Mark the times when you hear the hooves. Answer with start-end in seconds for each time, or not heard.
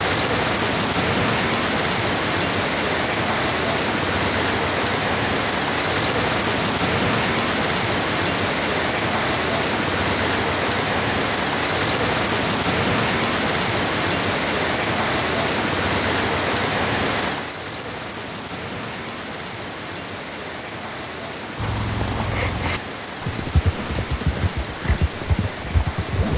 21.6-26.3.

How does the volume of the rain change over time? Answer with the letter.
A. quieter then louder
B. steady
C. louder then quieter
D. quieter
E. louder
D.